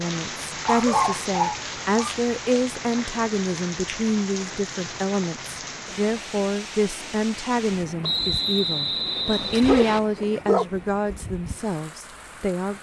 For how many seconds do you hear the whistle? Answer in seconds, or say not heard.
2 s.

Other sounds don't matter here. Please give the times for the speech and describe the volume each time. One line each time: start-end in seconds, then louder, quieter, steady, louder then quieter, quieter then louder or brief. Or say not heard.
0.0-12.7 steady.